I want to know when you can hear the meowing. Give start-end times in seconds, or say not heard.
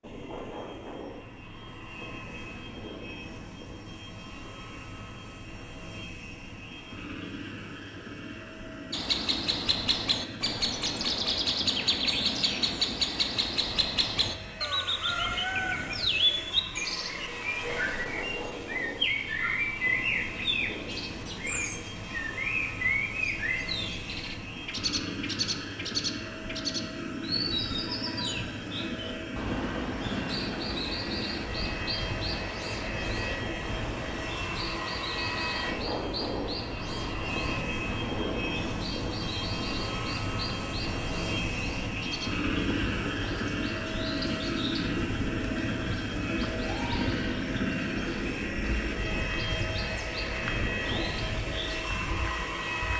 not heard.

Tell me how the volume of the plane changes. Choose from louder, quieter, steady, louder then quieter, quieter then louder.
louder.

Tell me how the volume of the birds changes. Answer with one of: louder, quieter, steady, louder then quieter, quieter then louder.
quieter.